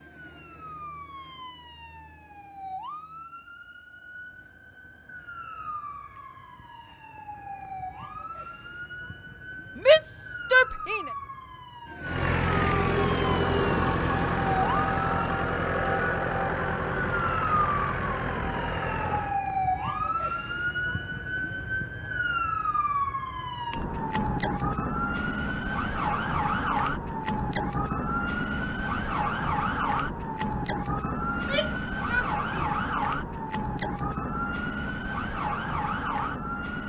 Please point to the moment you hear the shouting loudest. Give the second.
10 s.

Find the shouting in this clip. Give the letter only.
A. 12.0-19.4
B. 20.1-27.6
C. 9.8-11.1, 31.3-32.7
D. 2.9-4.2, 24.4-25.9
C.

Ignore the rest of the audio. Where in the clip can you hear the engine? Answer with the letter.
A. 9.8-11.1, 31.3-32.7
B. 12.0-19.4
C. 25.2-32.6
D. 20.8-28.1
B.